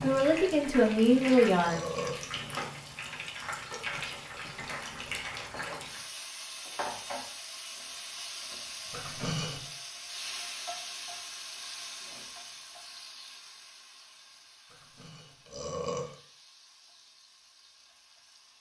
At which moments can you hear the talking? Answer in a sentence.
You can hear the talking from 0.0 to 1.8 s.